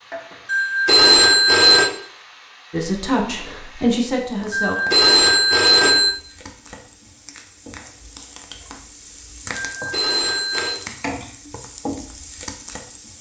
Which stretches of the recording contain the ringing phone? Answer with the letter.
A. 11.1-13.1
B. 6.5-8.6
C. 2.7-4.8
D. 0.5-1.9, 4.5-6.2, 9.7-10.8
D.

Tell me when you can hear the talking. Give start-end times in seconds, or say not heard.
2.7-4.8.